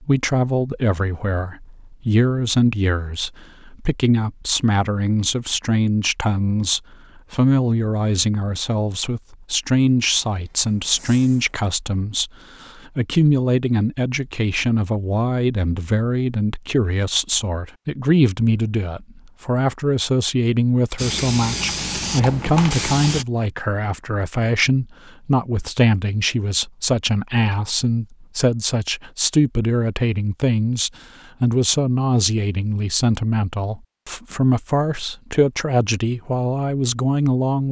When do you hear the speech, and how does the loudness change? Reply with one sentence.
You can hear the speech from 0.0 to 37.6 s, at a steady volume.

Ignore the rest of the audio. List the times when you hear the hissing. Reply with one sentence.
You can hear the hissing from 10.3 to 11.6 s and from 20.9 to 23.2 s.